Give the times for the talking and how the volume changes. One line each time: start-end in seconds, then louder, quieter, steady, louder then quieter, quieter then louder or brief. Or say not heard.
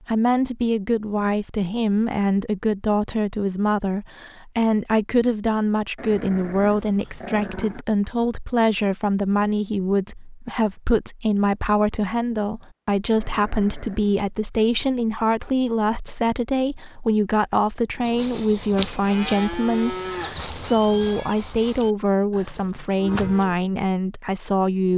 0.1-24.9 steady.